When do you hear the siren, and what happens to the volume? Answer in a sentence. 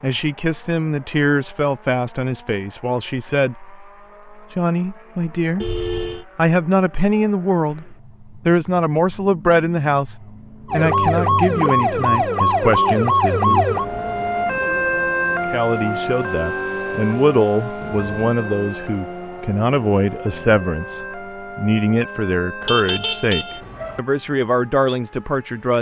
You can hear the siren from 10.7 to 23.6 s, getting quieter.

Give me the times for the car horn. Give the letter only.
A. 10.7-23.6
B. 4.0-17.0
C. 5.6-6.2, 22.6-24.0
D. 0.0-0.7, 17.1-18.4
C.